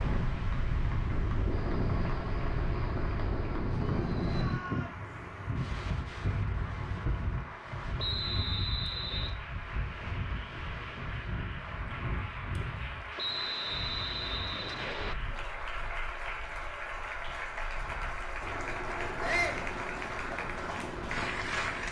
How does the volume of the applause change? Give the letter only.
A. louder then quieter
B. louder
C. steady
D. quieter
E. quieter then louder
B.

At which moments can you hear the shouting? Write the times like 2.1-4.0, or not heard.
3.9-5.0, 19.2-19.6.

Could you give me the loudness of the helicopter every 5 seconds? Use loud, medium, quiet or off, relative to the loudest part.
loud, off, off, loud, loud.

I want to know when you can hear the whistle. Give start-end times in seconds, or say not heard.
8.0-9.3, 13.2-15.2.